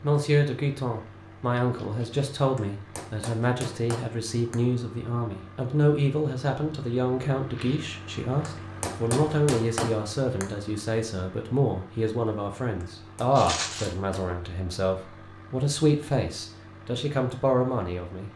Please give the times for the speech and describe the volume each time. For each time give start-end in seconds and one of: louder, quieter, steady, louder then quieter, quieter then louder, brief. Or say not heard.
0.0-18.3 steady.